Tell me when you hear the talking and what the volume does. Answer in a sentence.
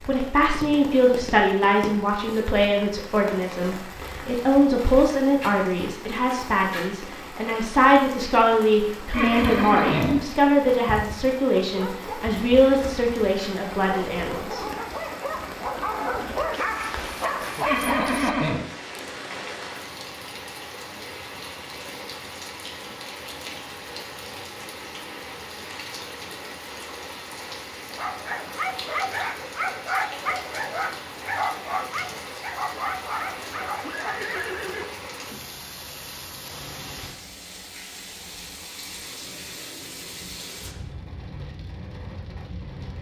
You can hear the talking from 0.1 to 14.7 s, at a steady volume.